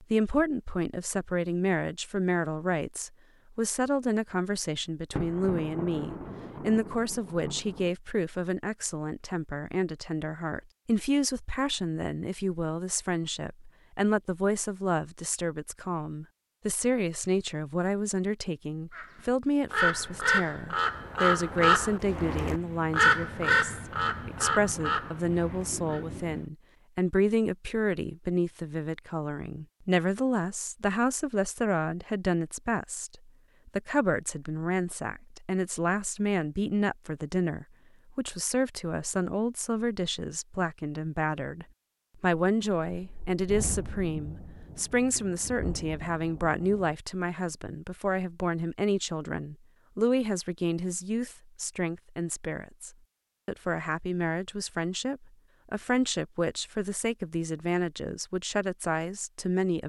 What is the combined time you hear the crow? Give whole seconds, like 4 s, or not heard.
7 s.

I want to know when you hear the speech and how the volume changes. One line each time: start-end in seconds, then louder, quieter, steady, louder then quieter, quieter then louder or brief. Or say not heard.
0.0-59.8 steady.